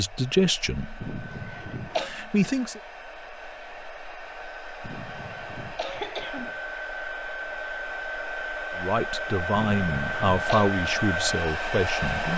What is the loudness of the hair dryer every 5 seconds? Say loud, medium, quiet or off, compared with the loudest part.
quiet, medium, loud.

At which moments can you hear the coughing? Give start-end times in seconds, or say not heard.
1.0-2.1, 4.8-6.5, 9.5-10.7.